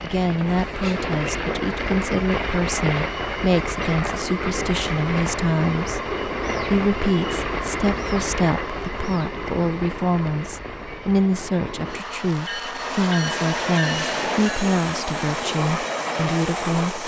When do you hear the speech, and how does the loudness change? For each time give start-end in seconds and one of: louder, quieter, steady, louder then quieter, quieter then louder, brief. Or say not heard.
0.0-17.0 steady.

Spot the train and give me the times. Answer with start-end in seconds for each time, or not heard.
0.0-17.0.